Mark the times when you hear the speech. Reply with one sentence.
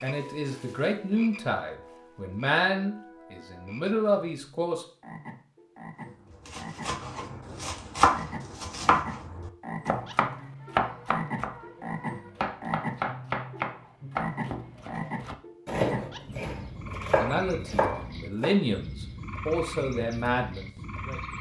The speech can be heard from 0.0 to 4.8 s and from 17.1 to 21.3 s.